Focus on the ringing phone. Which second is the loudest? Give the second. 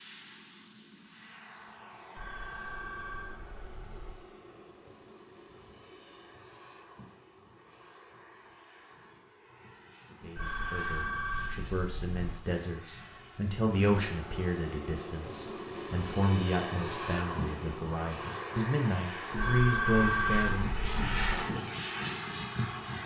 20 s.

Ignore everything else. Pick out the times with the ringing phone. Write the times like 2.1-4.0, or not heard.
2.1-4.2, 10.3-12.2, 19.4-21.3.